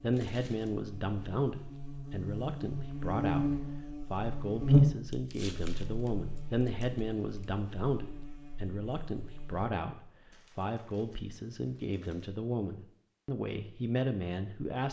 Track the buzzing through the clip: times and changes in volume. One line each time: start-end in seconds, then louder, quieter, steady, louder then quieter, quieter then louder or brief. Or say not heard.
0.0-9.7 louder then quieter.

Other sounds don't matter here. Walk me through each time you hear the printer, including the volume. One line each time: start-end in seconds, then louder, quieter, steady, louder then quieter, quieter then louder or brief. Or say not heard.
not heard.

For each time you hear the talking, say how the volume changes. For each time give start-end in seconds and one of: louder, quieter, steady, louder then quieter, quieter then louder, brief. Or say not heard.
0.0-14.8 steady.